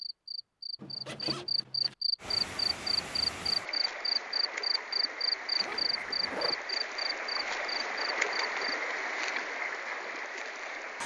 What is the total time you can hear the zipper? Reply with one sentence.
You can hear the zipper for 2 seconds altogether.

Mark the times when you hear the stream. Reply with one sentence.
You can hear the stream from 2.1 to 11.0 s.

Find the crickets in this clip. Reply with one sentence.
The crickets can be heard from 0.0 to 8.8 s.